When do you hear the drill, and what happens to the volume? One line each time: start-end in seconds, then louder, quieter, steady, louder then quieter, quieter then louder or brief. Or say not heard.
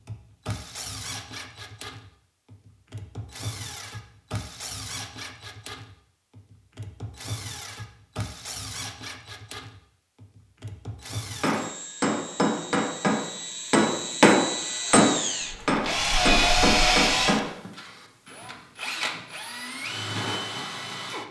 0.0-21.2 louder.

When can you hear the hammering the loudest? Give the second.
14 s.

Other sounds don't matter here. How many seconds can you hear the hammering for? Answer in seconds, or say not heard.
6 s.